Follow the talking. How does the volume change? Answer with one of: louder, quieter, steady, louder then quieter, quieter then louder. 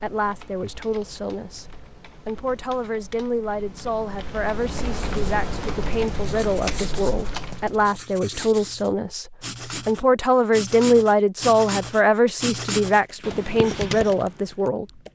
louder.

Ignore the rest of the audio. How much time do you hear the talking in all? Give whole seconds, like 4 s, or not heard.
15 s.